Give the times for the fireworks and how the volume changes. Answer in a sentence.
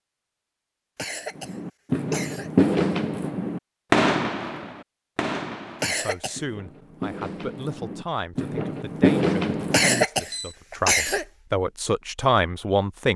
The fireworks can be heard from 1.4 to 10.5 s, getting quieter then louder.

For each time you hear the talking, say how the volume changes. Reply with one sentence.
You can hear the talking from 5.8 to 13.1 s, getting louder.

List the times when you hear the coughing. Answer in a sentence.
You can hear the coughing from 0.9 to 2.5 s, from 5.8 to 6.4 s and from 9.7 to 11.2 s.